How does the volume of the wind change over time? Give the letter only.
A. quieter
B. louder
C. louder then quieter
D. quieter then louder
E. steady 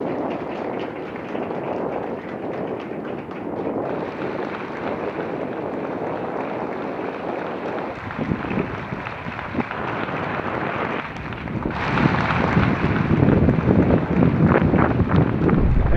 B.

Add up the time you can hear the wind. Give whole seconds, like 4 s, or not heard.
16 s.